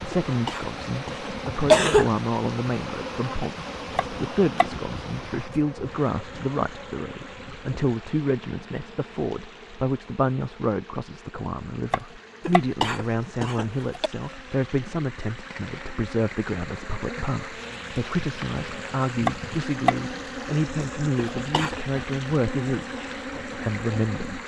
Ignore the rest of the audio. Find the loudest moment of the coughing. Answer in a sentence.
The volume of the coughing peaks at 2 seconds.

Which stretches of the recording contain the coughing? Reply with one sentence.
You can hear the coughing from 0.1 to 2.1 s, from 12.4 to 14.1 s and from 21.4 to 21.9 s.